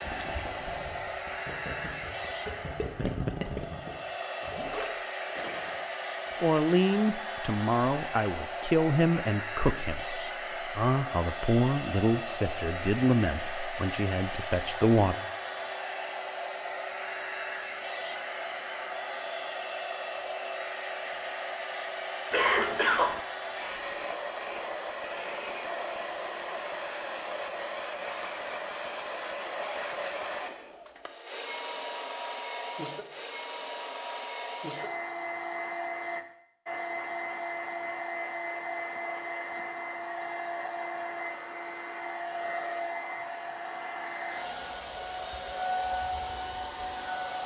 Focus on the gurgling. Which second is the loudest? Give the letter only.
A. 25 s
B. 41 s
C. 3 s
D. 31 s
C.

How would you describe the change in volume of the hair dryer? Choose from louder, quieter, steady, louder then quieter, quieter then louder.
steady.